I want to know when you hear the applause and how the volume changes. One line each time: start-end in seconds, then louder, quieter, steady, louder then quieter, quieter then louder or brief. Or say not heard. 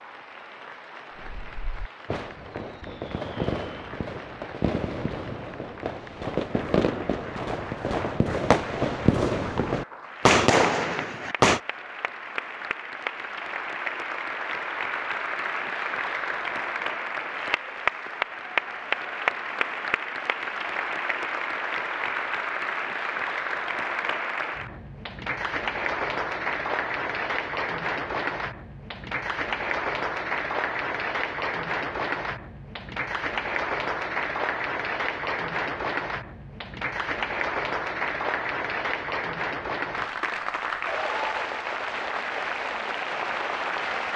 0.0-44.1 louder.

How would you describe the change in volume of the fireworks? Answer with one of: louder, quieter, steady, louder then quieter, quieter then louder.
louder.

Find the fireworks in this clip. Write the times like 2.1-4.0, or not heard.
1.1-11.6.